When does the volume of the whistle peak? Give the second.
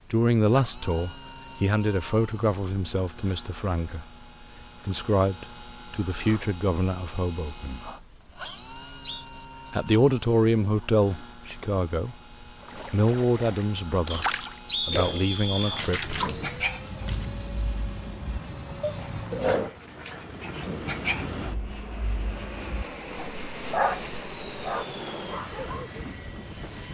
15 s.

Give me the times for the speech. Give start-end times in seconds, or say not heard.
0.1-4.0, 4.8-7.8, 9.7-12.2, 12.9-14.2, 14.8-16.1.